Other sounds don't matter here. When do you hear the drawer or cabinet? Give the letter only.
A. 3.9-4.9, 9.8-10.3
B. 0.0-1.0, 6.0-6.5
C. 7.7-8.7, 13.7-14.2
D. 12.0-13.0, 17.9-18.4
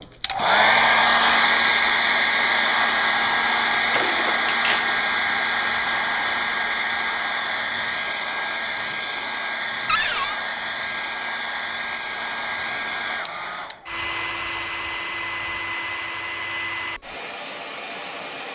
A.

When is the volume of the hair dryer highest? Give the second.
1 s.